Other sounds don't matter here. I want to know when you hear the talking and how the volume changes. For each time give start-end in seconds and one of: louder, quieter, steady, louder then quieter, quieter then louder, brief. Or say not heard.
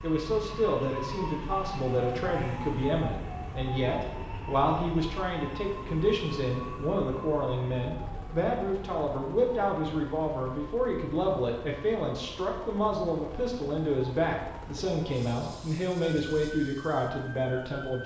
0.0-18.0 steady.